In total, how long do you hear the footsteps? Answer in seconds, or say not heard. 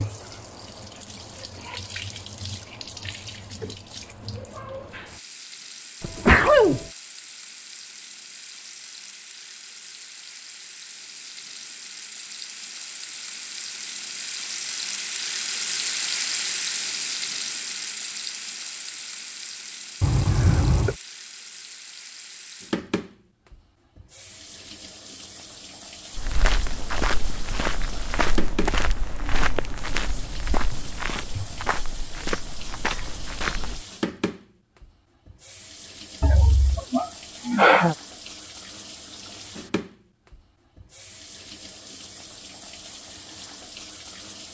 8 s.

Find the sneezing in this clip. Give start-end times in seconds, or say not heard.
6.0-6.8, 20.0-20.9, 36.2-38.0.